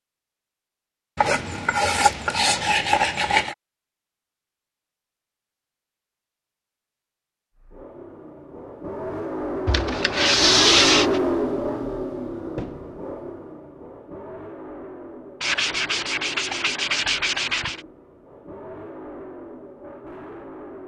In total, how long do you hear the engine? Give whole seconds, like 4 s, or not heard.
13 s.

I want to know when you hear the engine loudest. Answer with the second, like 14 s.
11 s.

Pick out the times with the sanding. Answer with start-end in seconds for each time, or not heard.
1.1-3.5, 9.7-11.2, 15.4-17.9.